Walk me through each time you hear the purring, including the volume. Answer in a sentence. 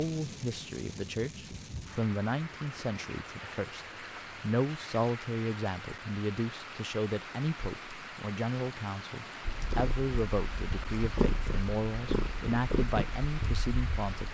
You can hear the purring from 9.4 to 14.3 s, getting louder then quieter.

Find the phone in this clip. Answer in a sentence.
You can't hear the phone here.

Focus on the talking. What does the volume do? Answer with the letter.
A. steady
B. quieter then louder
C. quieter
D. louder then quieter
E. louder
A.